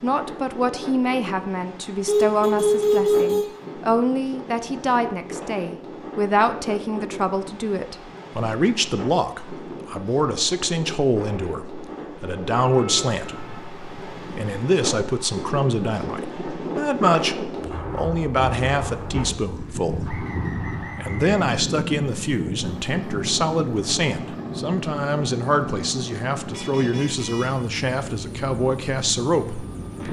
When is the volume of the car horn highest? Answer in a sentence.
The loudest moment of the car horn is at 3 seconds.